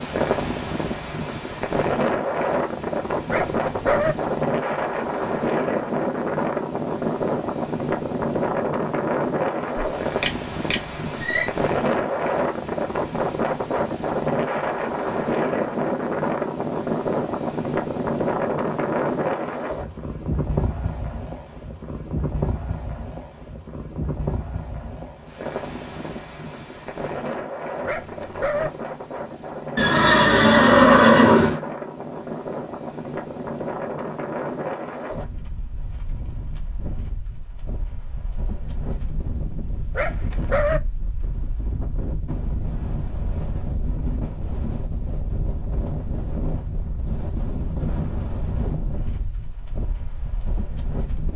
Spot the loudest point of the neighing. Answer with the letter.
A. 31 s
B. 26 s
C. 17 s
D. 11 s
A.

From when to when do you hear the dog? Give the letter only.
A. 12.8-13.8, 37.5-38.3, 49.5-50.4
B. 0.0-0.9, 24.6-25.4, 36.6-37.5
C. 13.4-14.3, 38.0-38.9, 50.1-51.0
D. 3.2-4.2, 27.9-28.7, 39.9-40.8
D.